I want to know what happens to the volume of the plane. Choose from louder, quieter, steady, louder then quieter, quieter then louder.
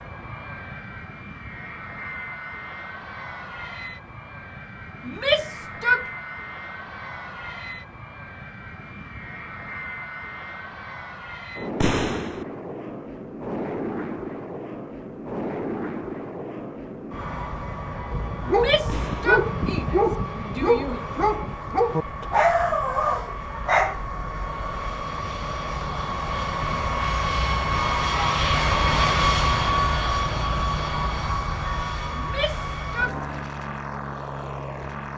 louder.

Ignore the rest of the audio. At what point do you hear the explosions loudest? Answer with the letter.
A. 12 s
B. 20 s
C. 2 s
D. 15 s
A.